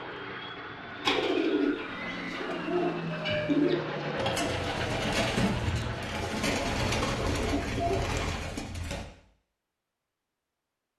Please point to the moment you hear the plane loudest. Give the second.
4 s.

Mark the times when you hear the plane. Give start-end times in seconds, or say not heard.
0.0-6.7.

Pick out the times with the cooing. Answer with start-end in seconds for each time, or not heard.
1.0-9.1.